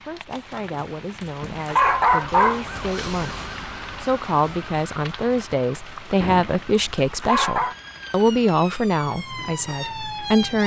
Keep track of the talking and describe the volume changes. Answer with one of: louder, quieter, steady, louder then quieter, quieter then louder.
louder.